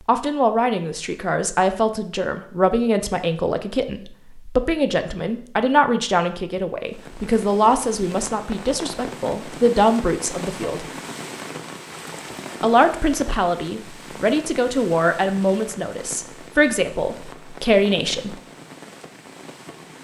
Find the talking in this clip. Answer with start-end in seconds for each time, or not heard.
0.1-10.8, 12.6-18.4.